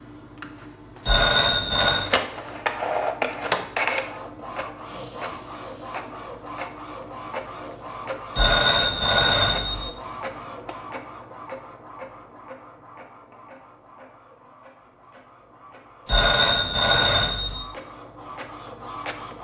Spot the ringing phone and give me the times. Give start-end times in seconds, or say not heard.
1.1-2.1, 8.3-9.9, 16.1-17.6.